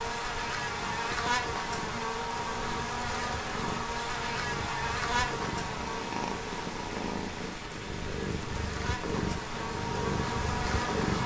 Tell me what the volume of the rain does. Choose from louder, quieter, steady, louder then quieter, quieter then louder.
steady.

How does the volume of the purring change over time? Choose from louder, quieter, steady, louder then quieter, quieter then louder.
louder.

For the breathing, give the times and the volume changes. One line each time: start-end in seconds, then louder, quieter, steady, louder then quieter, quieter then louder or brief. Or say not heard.
not heard.